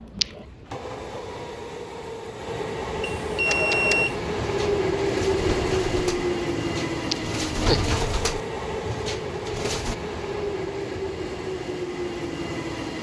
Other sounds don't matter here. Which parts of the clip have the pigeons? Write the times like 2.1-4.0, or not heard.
3.5-9.9.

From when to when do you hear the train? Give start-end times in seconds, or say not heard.
0.0-12.9.